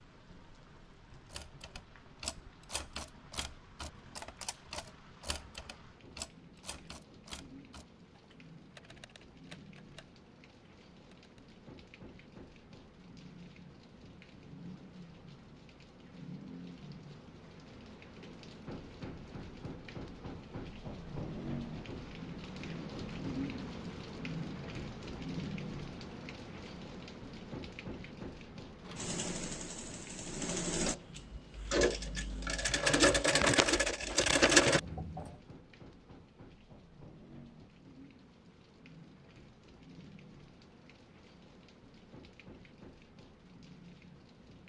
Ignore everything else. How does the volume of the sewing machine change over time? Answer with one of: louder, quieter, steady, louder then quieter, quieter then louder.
louder.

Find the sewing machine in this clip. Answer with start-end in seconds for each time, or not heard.
28.9-35.4.